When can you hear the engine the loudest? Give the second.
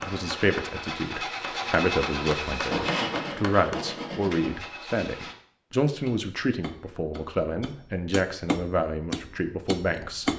2 s.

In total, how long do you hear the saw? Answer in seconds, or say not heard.
2 s.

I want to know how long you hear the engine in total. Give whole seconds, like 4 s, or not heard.
5 s.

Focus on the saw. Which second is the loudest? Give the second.
3 s.